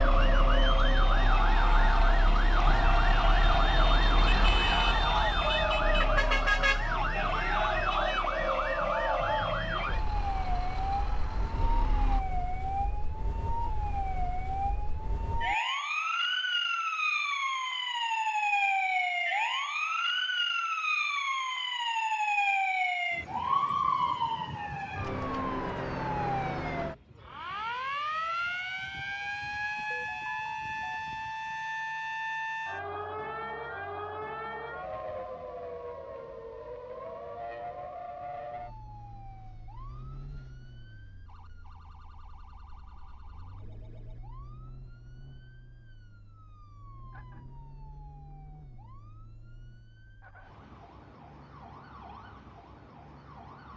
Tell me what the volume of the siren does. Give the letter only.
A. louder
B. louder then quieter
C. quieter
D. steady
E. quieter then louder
C.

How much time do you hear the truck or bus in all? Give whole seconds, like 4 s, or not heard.
12 s.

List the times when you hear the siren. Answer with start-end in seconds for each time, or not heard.
0.0-53.7.